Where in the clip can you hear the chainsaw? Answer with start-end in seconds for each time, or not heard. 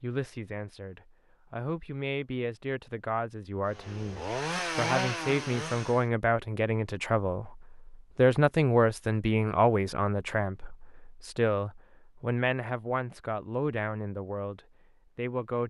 3.7-6.0.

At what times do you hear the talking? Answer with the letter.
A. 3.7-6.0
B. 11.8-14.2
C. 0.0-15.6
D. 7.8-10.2
C.